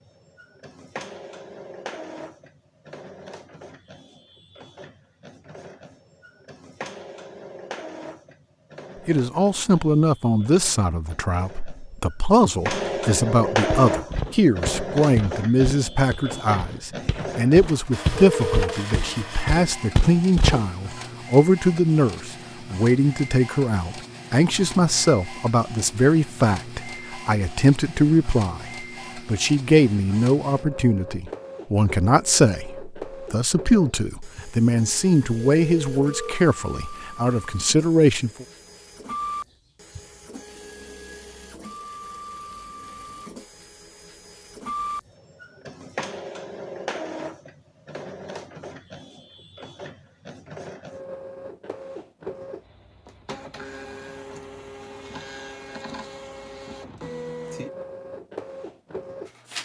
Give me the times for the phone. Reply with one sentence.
The phone can be heard from 18.1 to 18.9 s and from 35.5 to 36.4 s.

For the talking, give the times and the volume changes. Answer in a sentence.
You can hear the talking from 9.1 to 38.5 s, at a steady volume.